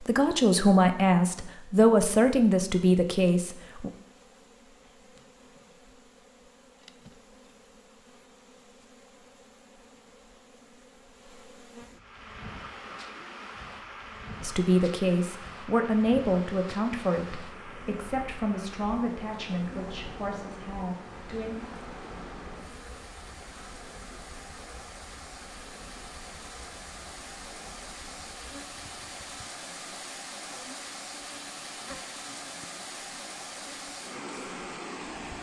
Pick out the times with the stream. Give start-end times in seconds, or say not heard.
11.9-35.3.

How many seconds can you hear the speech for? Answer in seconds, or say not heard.
11 s.